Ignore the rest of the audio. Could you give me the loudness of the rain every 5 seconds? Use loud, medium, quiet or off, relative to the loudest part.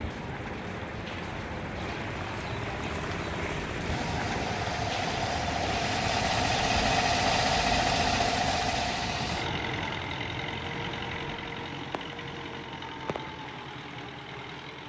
loud, loud, medium.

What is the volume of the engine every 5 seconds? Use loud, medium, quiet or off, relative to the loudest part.
medium, loud, medium.